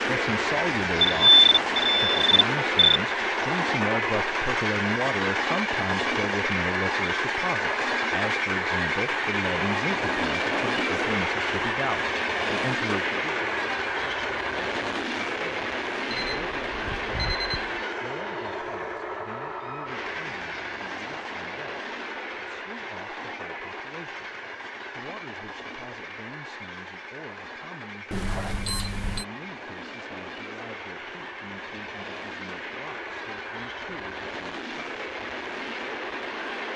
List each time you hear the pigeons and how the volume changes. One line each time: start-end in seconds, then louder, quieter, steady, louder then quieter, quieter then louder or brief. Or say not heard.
not heard.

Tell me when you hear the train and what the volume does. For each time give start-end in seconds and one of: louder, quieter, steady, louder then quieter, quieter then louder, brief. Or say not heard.
0.0-36.7 quieter.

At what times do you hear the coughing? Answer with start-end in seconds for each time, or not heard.
not heard.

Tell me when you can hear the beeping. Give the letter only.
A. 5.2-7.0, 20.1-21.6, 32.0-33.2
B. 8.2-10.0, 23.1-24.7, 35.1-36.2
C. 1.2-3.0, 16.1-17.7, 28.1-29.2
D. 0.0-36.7
C.